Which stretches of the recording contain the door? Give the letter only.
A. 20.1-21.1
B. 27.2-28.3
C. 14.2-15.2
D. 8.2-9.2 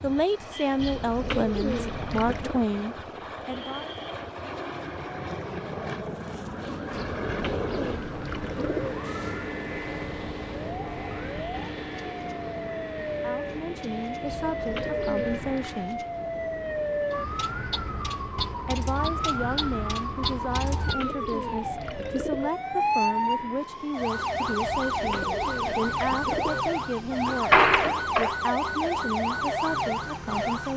B.